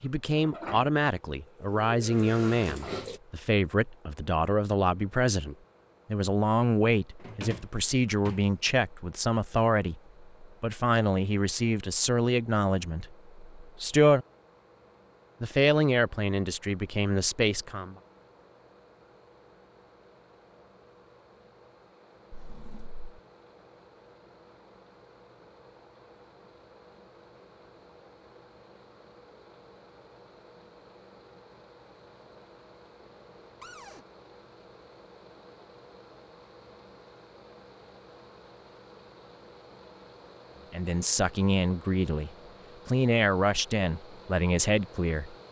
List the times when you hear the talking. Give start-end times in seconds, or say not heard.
0.0-14.2, 15.4-17.9, 40.7-45.4.